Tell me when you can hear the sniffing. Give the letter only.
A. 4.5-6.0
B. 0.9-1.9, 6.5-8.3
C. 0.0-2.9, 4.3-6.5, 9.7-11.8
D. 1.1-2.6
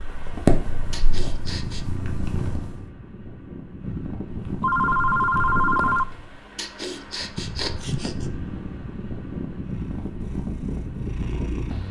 B.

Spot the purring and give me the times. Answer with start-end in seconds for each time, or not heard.
0.0-2.9, 4.3-6.5, 9.7-11.8.